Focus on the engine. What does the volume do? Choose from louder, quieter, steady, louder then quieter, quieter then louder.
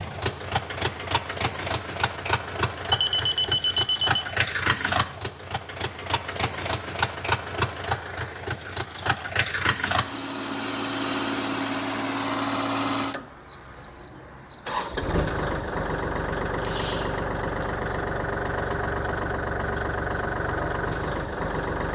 steady.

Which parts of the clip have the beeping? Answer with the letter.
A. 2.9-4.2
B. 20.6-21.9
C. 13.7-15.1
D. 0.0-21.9
A.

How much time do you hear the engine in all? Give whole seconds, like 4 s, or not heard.
22 s.